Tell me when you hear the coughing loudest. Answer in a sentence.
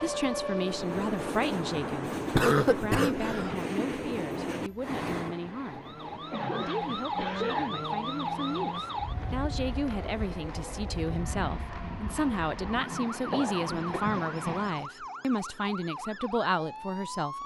The loudest moment of the coughing is at 3 seconds.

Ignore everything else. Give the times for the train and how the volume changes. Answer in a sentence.
The train can be heard from 0.0 to 14.9 s, getting quieter then louder.